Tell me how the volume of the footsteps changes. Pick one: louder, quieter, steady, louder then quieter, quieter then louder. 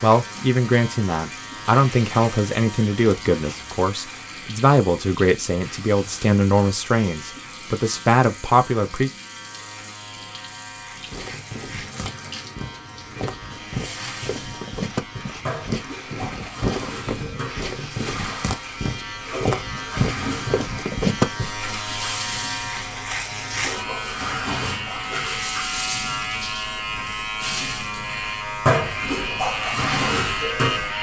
louder.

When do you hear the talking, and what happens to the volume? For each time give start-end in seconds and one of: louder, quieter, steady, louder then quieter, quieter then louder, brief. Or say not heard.
0.0-9.1 steady.